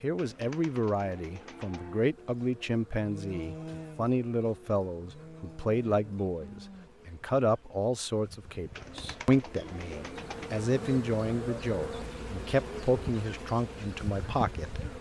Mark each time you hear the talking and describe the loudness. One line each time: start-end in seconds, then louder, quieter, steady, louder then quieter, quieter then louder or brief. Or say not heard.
0.0-14.8 steady.